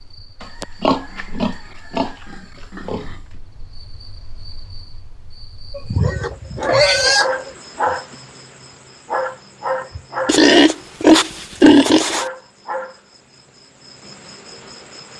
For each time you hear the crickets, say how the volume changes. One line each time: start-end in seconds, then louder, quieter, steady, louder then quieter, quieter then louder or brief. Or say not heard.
0.0-15.1 louder then quieter.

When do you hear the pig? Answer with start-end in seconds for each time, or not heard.
0.4-3.0, 5.8-7.5, 10.2-12.2.